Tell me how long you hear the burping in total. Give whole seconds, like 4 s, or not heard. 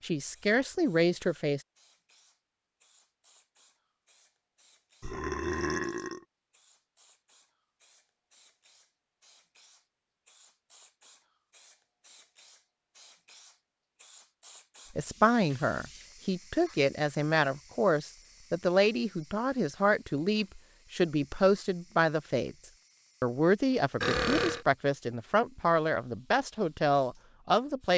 2 s.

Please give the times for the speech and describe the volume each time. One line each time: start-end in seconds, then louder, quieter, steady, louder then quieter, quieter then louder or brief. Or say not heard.
0.0-1.6 brief
14.9-22.6 steady
23.2-27.9 steady.